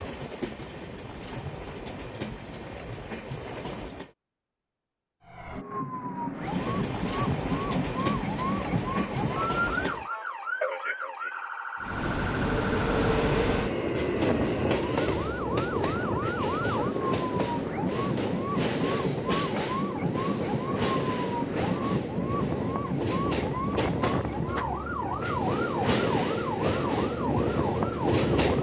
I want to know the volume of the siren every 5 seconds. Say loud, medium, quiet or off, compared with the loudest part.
off, loud, loud, loud, loud, loud.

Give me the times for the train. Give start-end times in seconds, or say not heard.
0.0-4.2, 6.3-10.1, 11.8-28.5.